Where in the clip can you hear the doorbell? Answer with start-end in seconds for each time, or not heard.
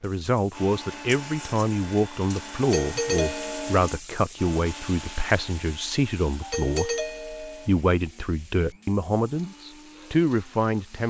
2.6-3.8, 6.4-7.7.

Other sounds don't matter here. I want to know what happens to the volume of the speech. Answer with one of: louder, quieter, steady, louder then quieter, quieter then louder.
steady.